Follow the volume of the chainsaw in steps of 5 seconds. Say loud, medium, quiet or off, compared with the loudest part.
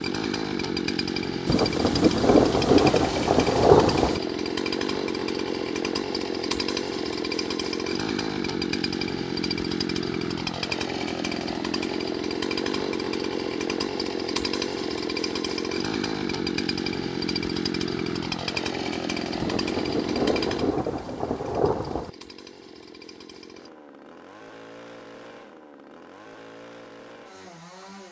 loud, loud, loud, loud, medium, quiet.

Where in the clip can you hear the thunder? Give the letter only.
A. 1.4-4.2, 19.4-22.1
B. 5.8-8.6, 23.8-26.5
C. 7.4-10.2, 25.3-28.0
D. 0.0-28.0
A.